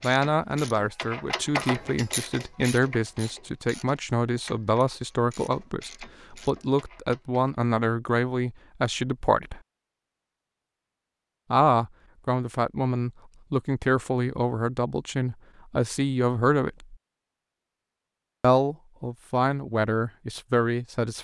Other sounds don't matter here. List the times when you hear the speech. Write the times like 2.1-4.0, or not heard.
0.0-9.6, 11.5-16.9, 18.4-21.2.